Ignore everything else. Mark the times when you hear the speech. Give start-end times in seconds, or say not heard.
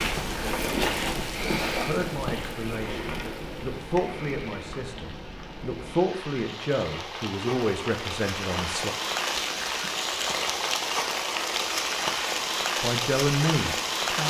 1.8-8.9, 12.8-14.2.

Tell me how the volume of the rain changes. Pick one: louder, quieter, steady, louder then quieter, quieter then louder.
quieter then louder.